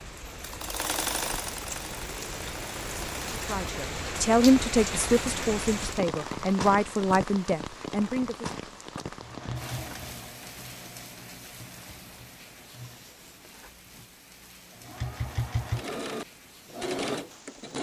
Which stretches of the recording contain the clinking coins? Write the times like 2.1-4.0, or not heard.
not heard.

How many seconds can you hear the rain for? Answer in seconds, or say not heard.
18 s.